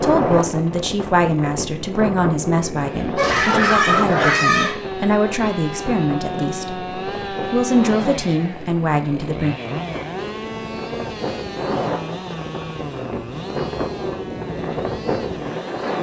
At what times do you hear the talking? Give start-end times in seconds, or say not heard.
0.0-9.6.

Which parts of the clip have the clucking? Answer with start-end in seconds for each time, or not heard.
3.1-4.8.